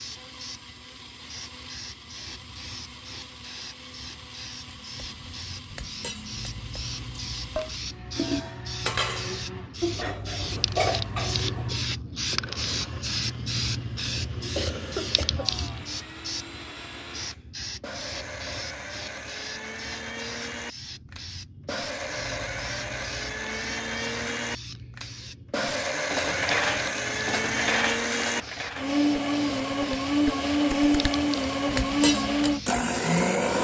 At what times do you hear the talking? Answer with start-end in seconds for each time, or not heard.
not heard.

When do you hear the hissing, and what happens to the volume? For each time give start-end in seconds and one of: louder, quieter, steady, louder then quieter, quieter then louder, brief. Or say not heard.
0.0-33.5 louder then quieter.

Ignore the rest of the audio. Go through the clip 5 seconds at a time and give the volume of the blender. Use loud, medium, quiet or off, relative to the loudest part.
quiet, quiet, quiet, quiet, medium, loud, loud.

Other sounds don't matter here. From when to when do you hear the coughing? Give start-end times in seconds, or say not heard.
14.6-15.6.